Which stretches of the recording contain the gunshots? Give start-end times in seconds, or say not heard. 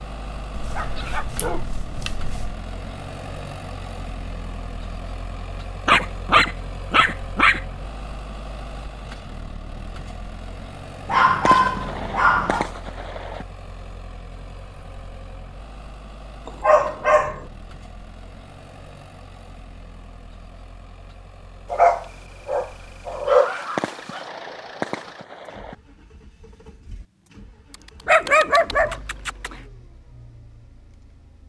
11.4-13.4, 23.8-25.8.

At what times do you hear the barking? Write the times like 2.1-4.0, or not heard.
0.5-2.5, 5.8-7.6, 11.1-12.7, 16.4-17.4, 21.7-24.2, 28.1-29.6.